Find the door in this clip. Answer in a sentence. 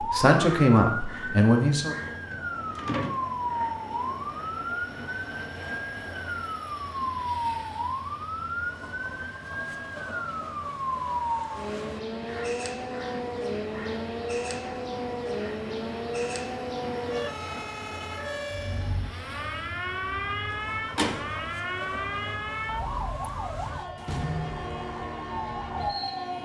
The door can be heard from 2.3 to 3.1 s and from 20.5 to 21.4 s.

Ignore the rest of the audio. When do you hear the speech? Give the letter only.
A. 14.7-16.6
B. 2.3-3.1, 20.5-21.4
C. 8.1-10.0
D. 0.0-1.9
D.